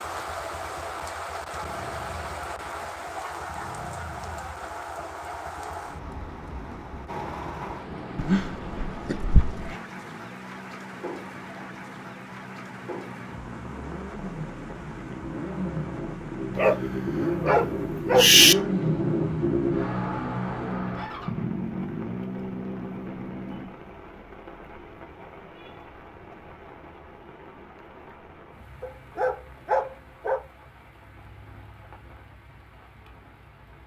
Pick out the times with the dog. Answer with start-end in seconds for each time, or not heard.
8.2-9.8, 16.6-18.6, 28.8-30.4.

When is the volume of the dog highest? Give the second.
18 s.